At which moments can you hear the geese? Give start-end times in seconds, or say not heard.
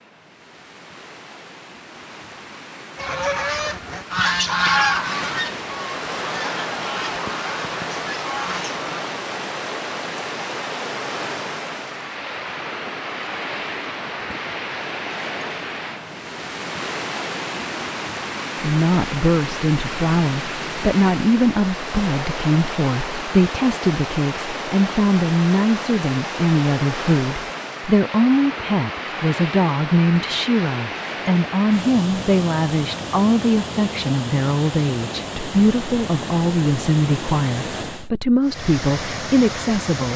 3.0-8.9.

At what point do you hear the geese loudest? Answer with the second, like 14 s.
5 s.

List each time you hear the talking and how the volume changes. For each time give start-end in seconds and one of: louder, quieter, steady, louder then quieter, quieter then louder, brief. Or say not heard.
18.6-40.1 steady.